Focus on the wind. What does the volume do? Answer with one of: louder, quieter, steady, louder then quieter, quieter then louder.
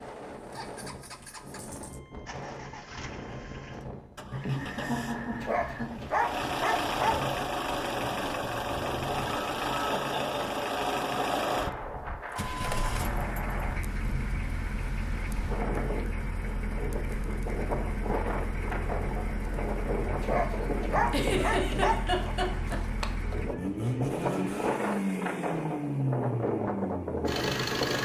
louder.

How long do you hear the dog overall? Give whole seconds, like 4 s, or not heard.
4 s.